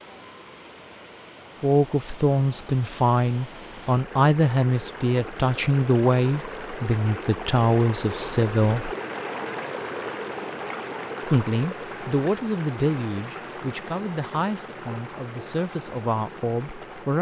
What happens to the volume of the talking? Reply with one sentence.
The loudness of the talking goes down.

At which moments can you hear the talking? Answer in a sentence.
The talking can be heard from 1.6 to 8.9 s and from 11.2 to 17.1 s.